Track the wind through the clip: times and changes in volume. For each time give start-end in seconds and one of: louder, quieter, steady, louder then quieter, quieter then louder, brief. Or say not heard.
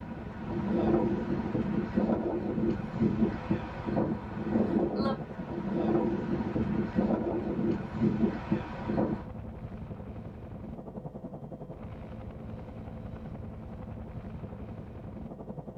0.0-9.2 steady.